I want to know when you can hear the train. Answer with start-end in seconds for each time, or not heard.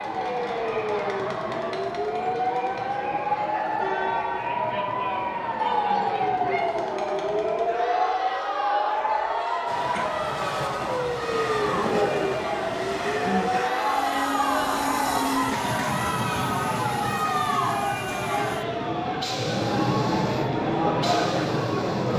9.7-22.1.